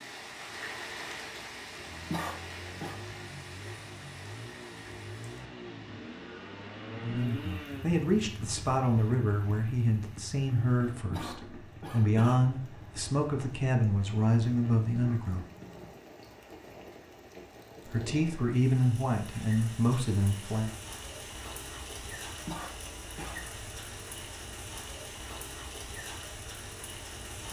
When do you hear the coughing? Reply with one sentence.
You can hear the coughing from 2.1 to 3.0 s, from 11.1 to 12.4 s and from 22.4 to 23.4 s.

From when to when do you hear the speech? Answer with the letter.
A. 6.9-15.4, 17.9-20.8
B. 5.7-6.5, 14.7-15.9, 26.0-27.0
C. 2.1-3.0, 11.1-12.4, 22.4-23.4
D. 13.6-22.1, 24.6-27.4
A.